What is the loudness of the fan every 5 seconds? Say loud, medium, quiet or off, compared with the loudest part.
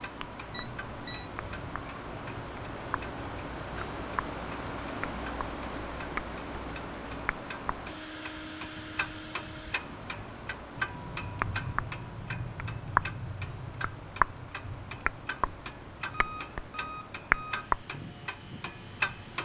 loud, loud, medium, medium.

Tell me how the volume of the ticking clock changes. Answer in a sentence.
The volume of the ticking clock goes up.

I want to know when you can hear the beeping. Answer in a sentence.
The beeping can be heard from 0.5 to 1.3 s and from 16.1 to 17.7 s.